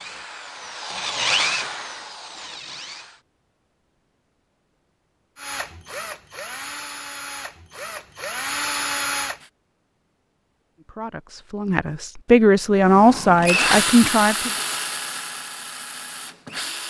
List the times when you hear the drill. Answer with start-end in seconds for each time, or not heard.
0.0-3.2, 5.3-9.4, 12.8-16.8.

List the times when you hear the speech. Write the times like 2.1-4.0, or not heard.
10.8-14.5.